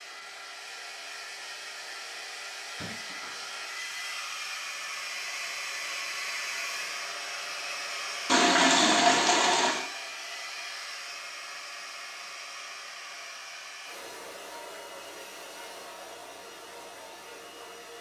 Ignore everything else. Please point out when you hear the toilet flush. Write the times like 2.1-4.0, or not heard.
8.2-9.8.